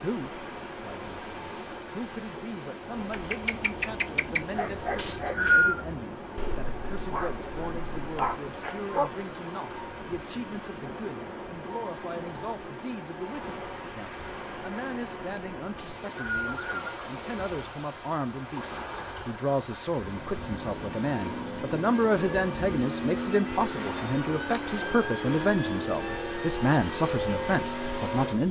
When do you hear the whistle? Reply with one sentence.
You can hear the whistle from 5.0 to 5.8 s and from 15.8 to 16.9 s.